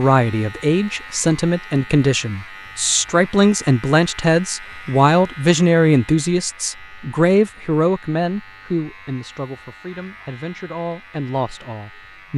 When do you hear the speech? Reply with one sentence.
The speech can be heard from 0.0 to 12.3 s.